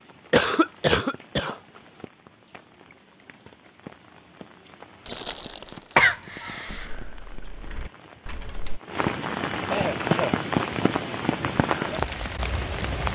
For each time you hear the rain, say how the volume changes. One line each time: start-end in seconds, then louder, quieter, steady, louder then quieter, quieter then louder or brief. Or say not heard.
0.0-13.1 louder.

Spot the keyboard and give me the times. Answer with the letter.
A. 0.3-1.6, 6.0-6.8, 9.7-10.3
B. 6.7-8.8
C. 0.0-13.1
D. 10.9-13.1
B.